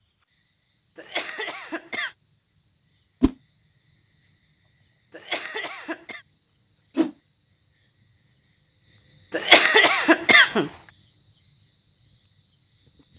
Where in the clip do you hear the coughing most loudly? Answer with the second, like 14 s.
10 s.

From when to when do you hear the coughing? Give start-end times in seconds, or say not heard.
0.9-2.1, 5.1-6.2, 9.3-10.7.